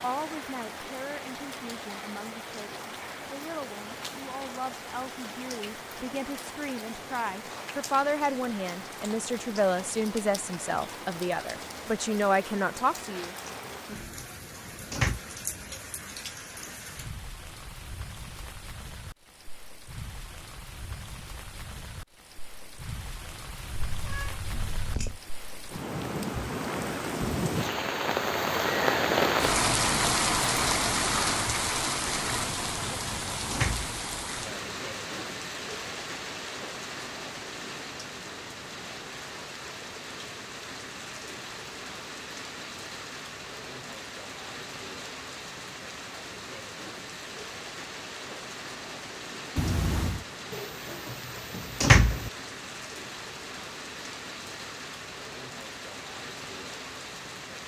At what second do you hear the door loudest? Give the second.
52 s.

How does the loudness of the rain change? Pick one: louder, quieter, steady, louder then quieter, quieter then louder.
louder then quieter.